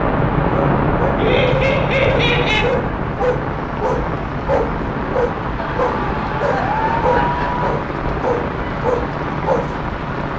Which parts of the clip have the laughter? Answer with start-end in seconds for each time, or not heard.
1.1-2.7, 5.5-7.7.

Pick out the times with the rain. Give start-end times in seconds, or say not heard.
0.0-10.3.